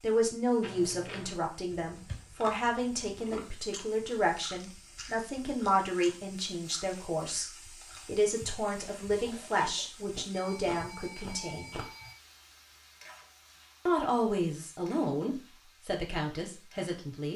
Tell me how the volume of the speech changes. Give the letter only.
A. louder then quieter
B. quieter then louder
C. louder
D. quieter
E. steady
E.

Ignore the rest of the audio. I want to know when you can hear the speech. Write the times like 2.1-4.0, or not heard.
0.0-11.7, 13.8-17.3.